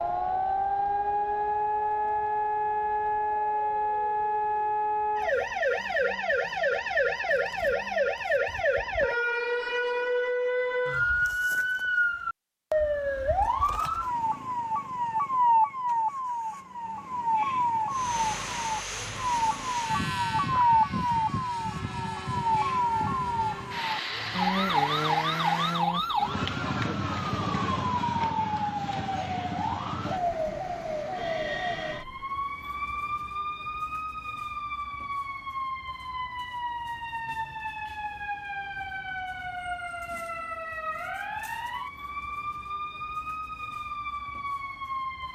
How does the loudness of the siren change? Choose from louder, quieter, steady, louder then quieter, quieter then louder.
quieter.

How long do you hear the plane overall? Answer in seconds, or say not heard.
8 s.